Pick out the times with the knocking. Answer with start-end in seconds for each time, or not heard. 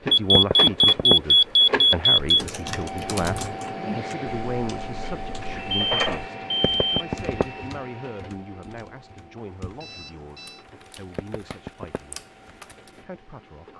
0.3-1.1, 6.6-7.5, 11.2-12.0.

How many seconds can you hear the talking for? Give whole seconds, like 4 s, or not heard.
13 s.